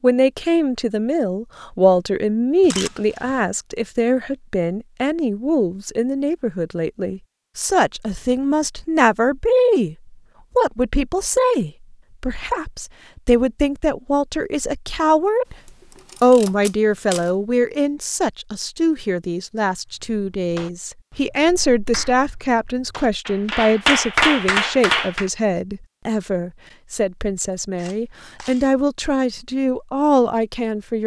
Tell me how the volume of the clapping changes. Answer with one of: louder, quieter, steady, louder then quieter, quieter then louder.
louder.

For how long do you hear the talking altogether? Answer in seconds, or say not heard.
30 s.